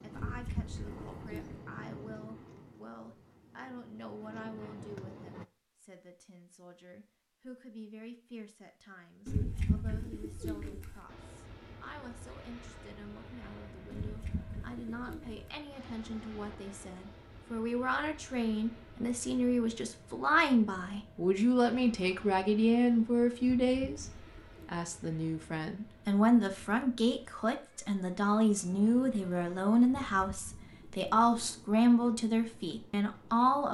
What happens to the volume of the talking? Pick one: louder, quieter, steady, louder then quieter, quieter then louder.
louder.